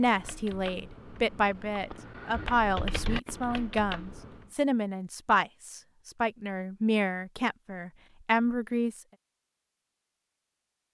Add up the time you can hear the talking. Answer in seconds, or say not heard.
9 s.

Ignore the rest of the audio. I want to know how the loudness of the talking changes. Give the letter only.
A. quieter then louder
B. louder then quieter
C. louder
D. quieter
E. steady
E.